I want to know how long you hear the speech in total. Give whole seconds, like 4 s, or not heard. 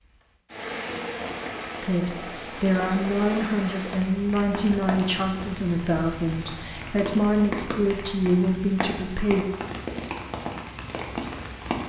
8 s.